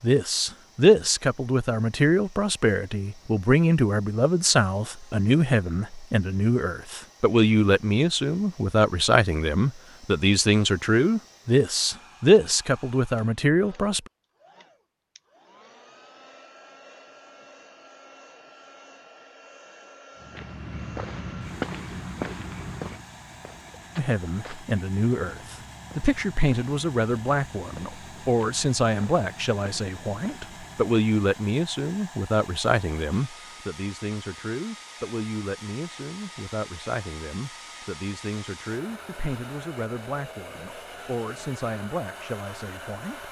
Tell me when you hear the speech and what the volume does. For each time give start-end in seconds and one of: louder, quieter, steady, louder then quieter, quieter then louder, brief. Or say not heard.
0.0-14.0 steady
23.9-43.2 quieter.